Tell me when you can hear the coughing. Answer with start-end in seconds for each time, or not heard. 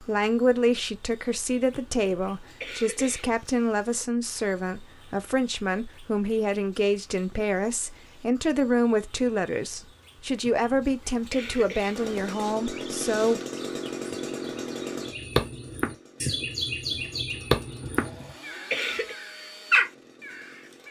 1.7-3.4, 10.6-12.1, 17.8-19.1.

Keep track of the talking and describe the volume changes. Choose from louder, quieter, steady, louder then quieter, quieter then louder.
steady.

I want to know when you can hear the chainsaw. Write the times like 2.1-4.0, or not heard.
11.9-20.8.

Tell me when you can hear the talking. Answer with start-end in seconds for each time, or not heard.
0.0-13.4.